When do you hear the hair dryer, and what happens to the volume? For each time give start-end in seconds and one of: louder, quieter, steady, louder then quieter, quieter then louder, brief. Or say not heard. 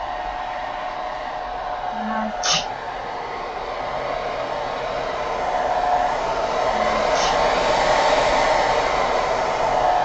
0.0-10.0 louder.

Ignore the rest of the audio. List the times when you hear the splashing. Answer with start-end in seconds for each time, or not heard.
not heard.